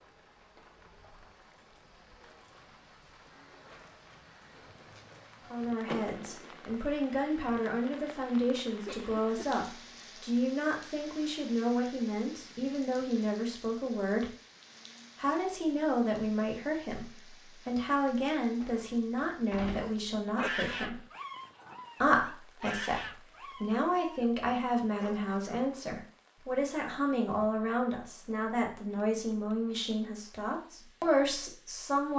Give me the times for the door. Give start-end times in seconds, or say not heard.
5.8-6.7, 18.6-19.9.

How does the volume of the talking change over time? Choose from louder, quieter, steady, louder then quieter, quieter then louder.
steady.